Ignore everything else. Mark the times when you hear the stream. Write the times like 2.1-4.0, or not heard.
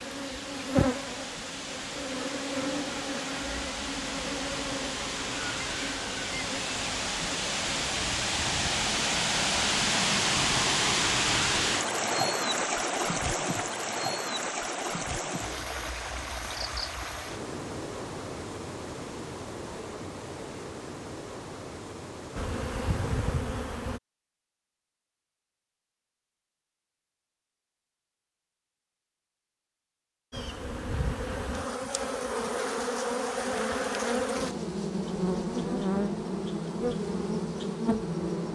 0.0-23.3.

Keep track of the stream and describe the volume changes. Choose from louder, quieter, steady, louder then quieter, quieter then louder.
louder then quieter.